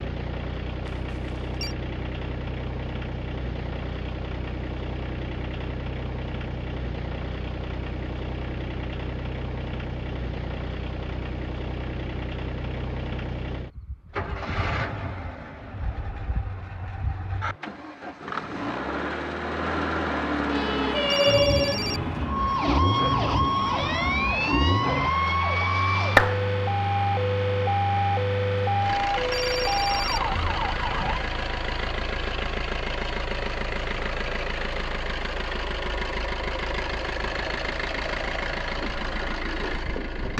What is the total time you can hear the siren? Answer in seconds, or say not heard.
11 s.